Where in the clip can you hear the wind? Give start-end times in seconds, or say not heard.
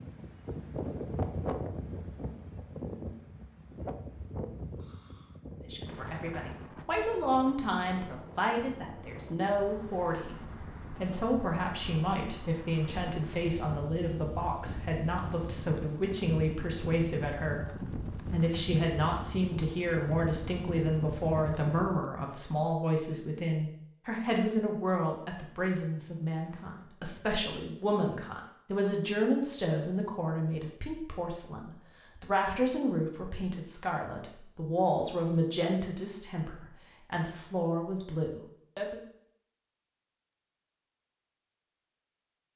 0.0-22.0.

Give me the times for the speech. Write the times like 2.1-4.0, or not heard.
5.6-10.3, 10.9-39.0.